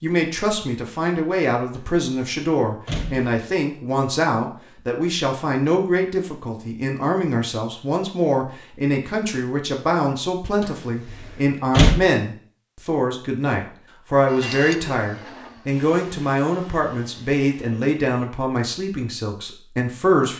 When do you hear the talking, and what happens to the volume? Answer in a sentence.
You can hear the talking from 0.0 to 20.3 s, at a steady volume.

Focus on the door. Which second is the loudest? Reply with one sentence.
The volume of the door peaks at 12 seconds.